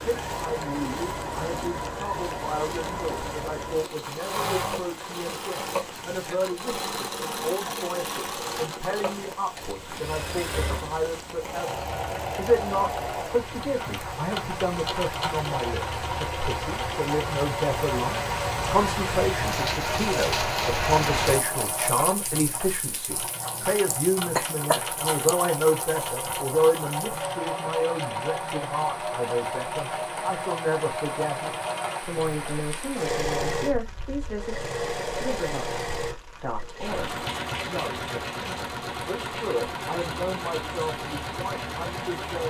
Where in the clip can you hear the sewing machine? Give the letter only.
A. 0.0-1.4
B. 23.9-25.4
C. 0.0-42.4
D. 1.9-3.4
C.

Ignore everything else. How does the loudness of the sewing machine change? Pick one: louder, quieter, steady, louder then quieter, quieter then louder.
steady.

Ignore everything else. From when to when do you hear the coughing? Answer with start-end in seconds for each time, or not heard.
23.9-25.4.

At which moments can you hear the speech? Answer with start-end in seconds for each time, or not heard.
0.1-42.4.